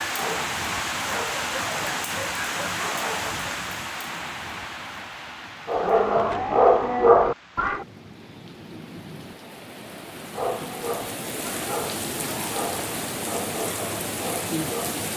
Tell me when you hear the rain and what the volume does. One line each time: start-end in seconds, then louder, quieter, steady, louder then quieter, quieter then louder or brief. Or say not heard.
0.0-15.1 quieter then louder.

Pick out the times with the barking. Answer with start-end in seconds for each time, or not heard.
0.0-3.5, 5.7-7.8, 10.3-15.0.